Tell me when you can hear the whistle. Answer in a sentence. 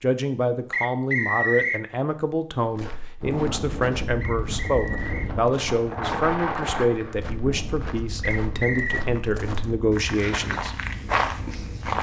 The whistle can be heard from 0.7 to 1.9 s, from 4.2 to 5.3 s and from 8.2 to 9.1 s.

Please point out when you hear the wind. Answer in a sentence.
You can hear the wind from 3.2 to 11.9 s.